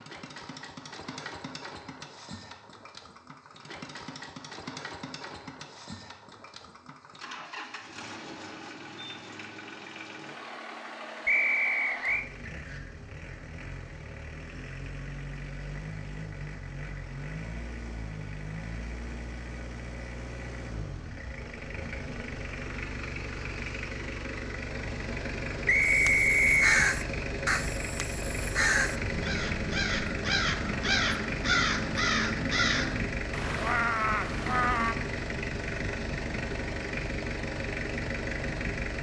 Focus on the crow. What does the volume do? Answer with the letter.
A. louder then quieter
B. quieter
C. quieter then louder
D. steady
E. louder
D.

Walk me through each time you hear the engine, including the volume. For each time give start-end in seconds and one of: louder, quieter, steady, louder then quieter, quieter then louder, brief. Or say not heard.
0.0-38.9 louder.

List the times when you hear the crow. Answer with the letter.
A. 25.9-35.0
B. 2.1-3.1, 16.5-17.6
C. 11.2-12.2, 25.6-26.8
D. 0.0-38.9
A.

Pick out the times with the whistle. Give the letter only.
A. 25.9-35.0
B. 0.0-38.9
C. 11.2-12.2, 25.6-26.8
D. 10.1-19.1
C.